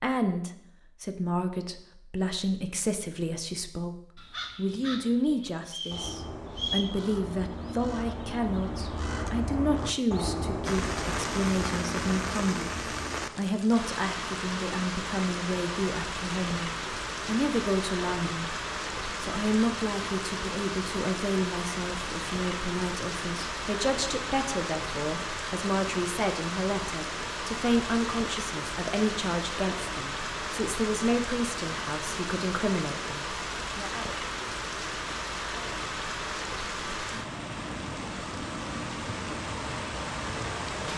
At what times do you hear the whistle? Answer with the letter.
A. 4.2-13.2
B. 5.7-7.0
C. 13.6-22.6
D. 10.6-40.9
B.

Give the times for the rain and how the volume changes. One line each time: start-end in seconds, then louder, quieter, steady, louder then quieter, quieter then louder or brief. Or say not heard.
10.6-40.9 steady.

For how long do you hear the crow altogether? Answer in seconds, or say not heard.
9 s.